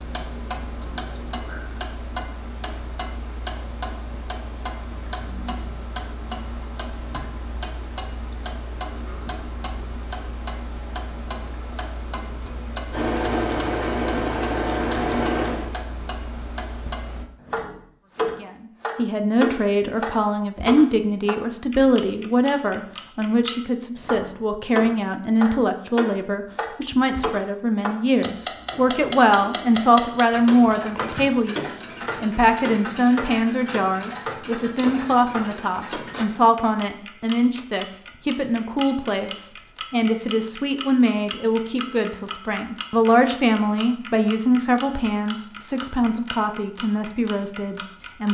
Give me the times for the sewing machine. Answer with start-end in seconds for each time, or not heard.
12.9-15.7.